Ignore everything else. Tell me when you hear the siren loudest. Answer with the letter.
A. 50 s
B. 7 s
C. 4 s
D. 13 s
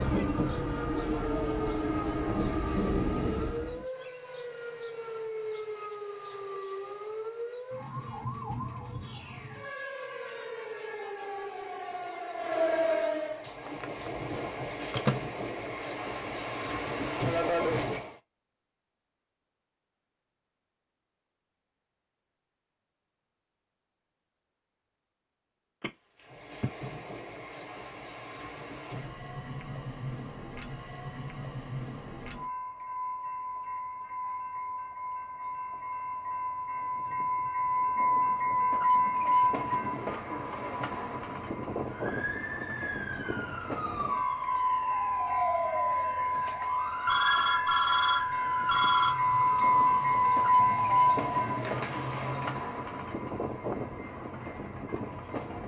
D.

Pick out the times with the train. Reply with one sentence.
You can hear the train from 0.0 to 3.9 s, from 13.2 to 18.1 s and from 26.2 to 55.6 s.